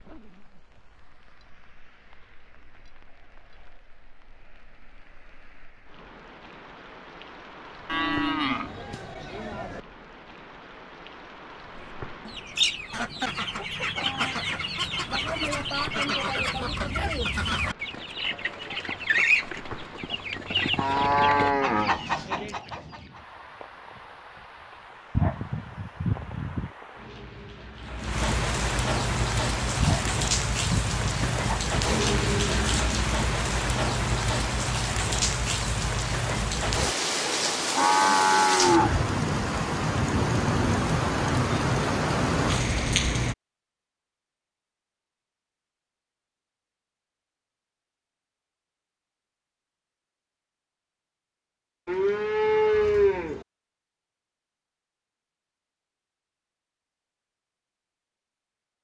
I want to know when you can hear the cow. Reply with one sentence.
The cow can be heard from 7.8 to 9.8 s, from 20.8 to 22.6 s, from 37.7 to 39.0 s and from 51.9 to 53.5 s.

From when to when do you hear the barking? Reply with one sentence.
You can hear the barking from 25.1 to 26.7 s and from 29.8 to 31.8 s.